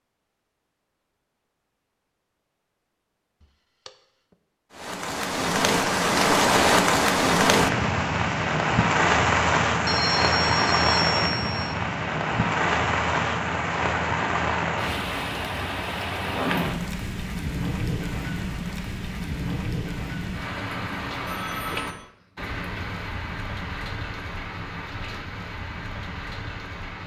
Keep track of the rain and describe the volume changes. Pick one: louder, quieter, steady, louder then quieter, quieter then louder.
quieter.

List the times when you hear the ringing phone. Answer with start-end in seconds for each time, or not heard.
3.4-3.9, 9.8-11.8, 21.2-22.1.